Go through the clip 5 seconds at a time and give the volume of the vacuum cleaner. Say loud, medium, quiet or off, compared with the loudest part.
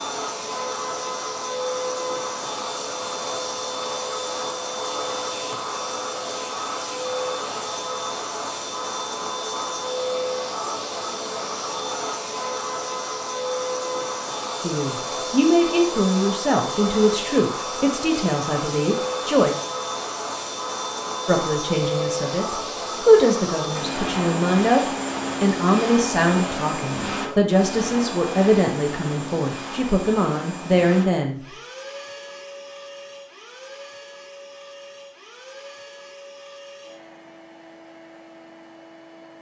loud, loud, loud, loud, loud, loud, medium, quiet.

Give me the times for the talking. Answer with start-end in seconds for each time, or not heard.
14.6-19.6, 21.2-24.8, 25.4-31.4.